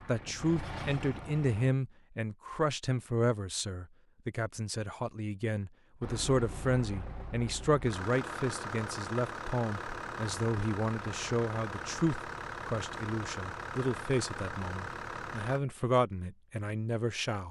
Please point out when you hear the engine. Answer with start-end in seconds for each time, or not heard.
0.0-1.8, 6.0-15.6.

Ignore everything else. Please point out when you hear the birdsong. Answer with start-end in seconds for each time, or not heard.
not heard.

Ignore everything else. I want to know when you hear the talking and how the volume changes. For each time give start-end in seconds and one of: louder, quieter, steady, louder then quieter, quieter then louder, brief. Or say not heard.
0.1-17.4 steady.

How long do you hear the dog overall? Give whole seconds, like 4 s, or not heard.
not heard.